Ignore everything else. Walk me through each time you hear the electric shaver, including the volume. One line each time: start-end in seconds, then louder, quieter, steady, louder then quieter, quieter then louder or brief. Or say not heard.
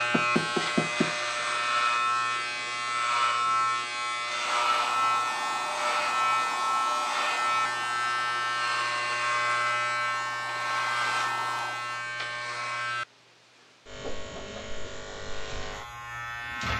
0.0-16.7 quieter.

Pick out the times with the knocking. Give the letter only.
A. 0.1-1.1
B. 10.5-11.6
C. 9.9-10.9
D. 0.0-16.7
A.